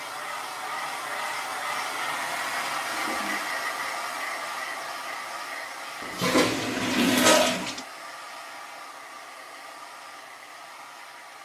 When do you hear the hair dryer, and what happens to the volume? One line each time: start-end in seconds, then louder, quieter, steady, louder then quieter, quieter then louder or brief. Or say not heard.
0.0-11.3 quieter.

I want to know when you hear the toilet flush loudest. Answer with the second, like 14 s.
7 s.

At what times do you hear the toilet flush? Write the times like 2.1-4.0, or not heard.
2.9-3.5, 6.0-7.8.